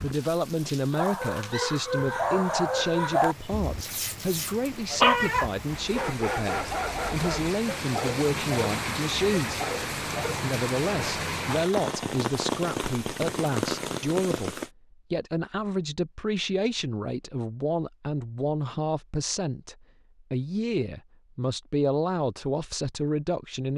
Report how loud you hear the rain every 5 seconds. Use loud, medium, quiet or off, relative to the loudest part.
quiet, loud, loud, off, off.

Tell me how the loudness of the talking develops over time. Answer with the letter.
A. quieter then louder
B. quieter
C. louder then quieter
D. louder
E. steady
E.